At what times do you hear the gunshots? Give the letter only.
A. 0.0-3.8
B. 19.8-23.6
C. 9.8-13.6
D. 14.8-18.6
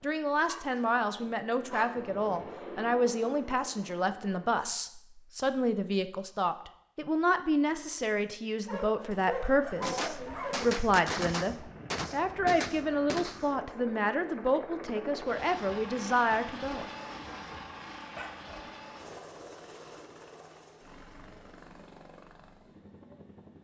C.